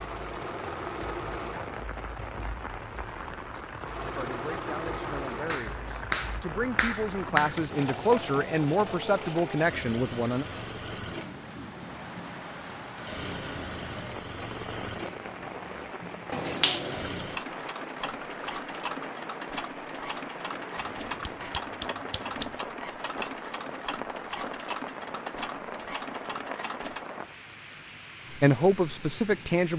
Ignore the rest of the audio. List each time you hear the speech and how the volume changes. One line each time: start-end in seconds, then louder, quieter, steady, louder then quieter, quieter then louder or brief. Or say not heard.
4.2-10.4 louder
28.3-29.7 brief.